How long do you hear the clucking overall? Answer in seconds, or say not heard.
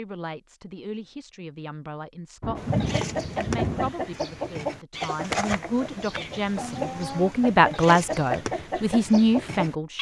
7 s.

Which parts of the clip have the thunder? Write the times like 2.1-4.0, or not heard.
2.4-3.9.